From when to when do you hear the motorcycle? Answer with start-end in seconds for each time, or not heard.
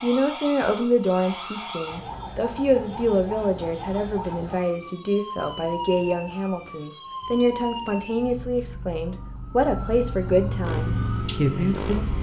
10.6-12.1.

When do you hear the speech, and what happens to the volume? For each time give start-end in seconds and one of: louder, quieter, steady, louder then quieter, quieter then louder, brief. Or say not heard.
0.0-12.1 steady.